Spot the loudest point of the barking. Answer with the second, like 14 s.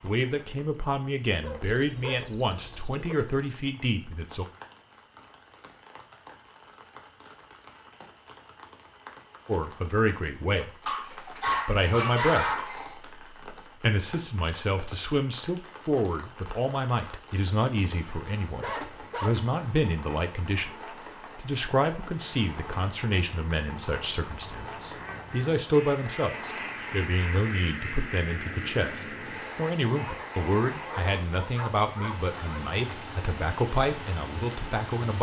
12 s.